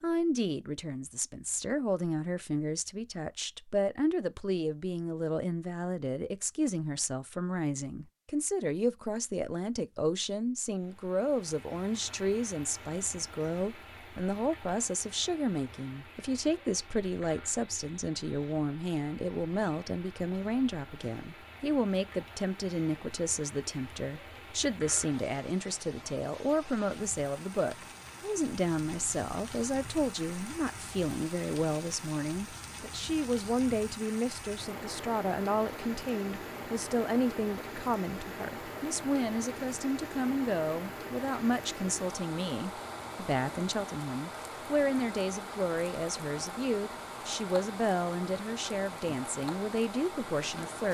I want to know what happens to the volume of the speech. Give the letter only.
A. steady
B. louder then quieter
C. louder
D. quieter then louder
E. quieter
A.